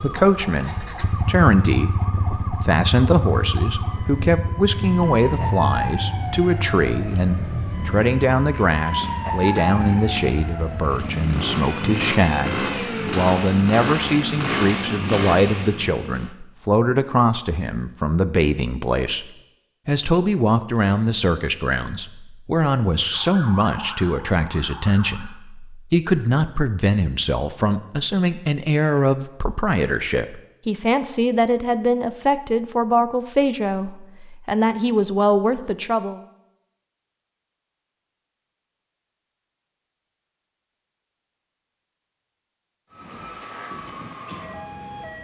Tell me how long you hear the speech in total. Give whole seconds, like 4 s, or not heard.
35 s.